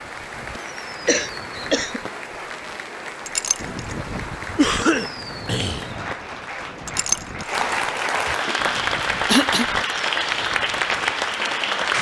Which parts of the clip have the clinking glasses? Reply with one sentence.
You can hear the clinking glasses from 3.2 to 4.0 s and from 6.8 to 7.5 s.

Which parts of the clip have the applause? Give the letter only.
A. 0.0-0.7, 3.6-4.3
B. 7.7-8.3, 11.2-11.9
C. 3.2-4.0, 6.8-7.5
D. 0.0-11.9
D.